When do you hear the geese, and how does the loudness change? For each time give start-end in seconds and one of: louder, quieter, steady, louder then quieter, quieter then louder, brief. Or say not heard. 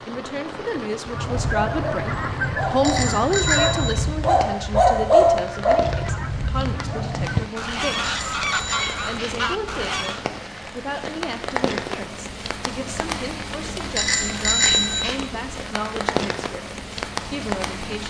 1.1-10.2 quieter then louder.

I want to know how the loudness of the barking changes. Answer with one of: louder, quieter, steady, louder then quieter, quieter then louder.
louder then quieter.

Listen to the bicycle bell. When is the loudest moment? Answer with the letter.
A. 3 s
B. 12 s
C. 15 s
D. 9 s
C.